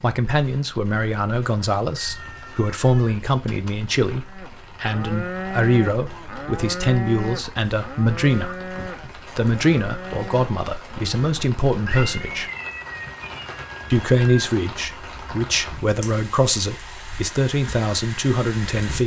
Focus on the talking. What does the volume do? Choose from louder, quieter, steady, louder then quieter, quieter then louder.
steady.